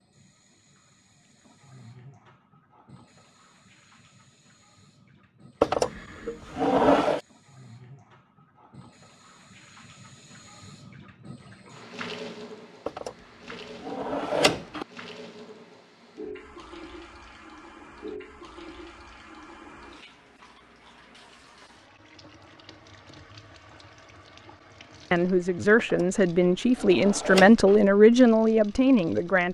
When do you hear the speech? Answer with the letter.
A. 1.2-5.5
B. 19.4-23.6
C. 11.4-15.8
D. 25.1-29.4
D.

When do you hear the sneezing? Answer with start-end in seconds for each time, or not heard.
not heard.